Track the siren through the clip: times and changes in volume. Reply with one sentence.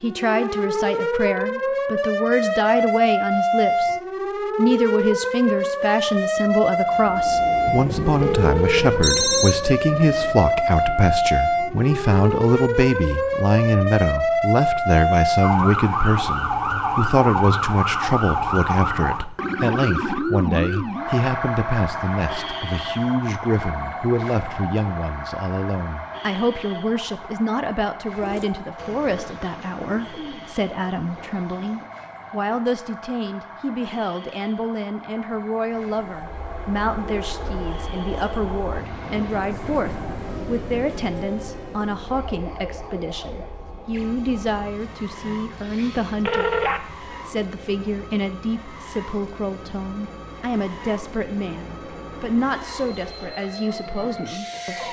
You can hear the siren from 0.0 to 54.8 s, getting quieter.